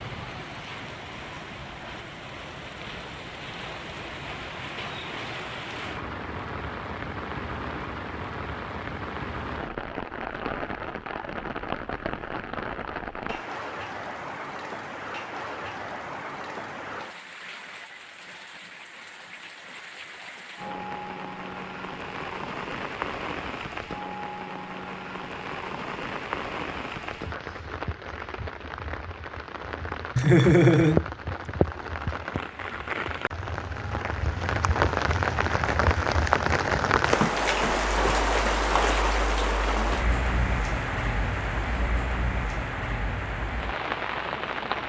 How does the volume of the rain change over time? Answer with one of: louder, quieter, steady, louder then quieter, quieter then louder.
louder.